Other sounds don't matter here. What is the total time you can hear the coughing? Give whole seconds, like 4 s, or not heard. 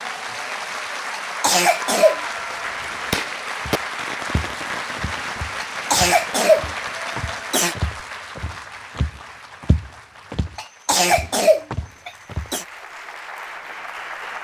5 s.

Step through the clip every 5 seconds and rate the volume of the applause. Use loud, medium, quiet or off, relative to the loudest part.
loud, loud, medium.